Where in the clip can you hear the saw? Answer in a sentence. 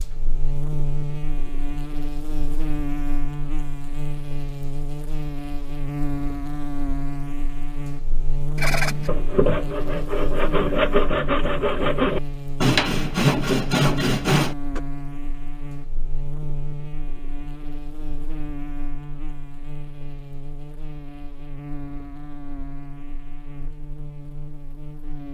The saw can be heard from 8.6 to 14.8 s.